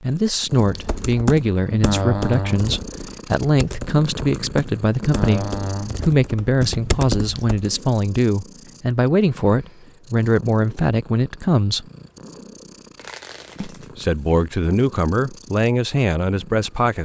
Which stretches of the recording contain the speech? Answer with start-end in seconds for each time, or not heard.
0.0-11.8, 13.6-17.0.